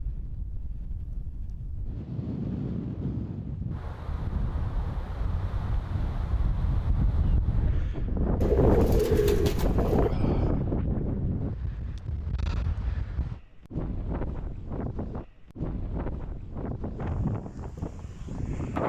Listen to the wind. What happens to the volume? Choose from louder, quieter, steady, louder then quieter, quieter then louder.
louder then quieter.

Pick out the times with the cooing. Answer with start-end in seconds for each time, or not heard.
8.4-10.2.